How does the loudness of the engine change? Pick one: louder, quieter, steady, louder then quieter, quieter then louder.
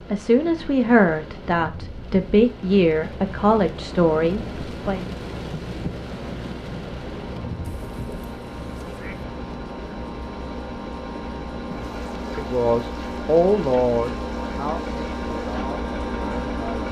louder.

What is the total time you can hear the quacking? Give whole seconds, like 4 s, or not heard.
2 s.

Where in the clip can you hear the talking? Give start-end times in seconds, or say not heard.
0.1-5.1, 12.3-16.8.